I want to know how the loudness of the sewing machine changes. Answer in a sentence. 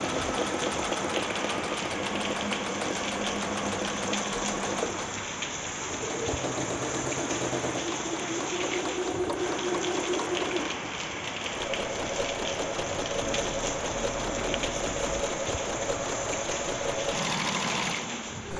The volume of the sewing machine stays about the same.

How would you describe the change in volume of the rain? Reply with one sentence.
The loudness of the rain stays about the same.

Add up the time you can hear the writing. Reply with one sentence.
The writing can be heard for 2 seconds in total.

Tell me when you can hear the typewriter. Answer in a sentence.
You can't hear the typewriter here.